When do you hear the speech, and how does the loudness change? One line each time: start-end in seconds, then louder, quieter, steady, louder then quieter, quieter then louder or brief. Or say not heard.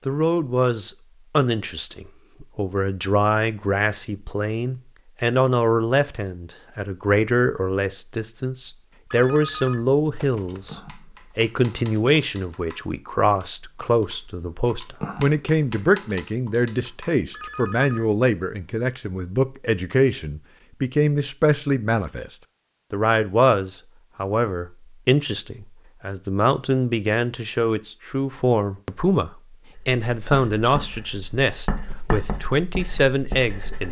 0.1-33.8 steady.